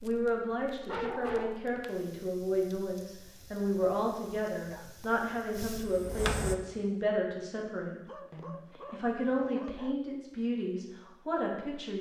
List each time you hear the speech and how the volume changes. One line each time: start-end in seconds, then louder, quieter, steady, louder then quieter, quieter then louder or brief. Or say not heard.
0.0-11.9 steady.